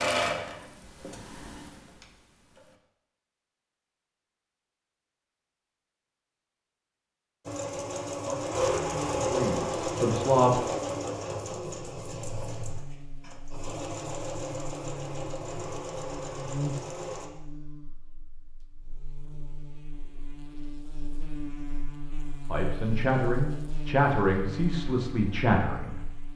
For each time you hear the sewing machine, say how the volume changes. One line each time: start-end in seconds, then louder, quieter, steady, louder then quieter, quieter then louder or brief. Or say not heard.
0.0-2.6 brief
7.5-17.3 quieter.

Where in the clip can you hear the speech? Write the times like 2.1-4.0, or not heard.
8.2-10.7, 22.4-26.1.